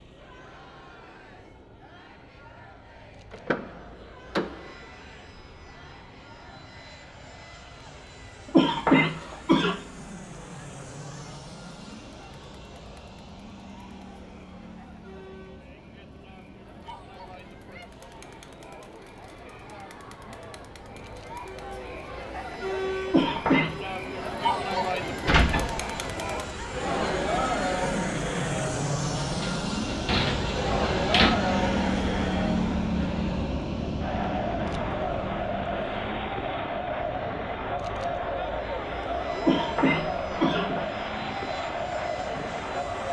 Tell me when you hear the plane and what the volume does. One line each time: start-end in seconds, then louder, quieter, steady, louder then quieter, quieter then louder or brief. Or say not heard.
0.0-43.0 louder then quieter.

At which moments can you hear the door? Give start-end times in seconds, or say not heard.
3.3-4.8, 25.2-25.9, 29.4-31.4.